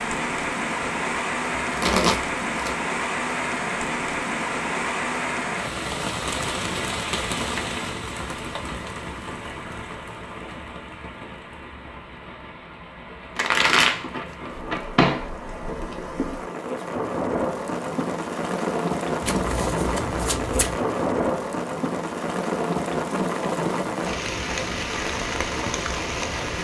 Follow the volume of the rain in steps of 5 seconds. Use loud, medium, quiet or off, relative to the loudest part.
loud, loud, quiet, loud, loud, loud.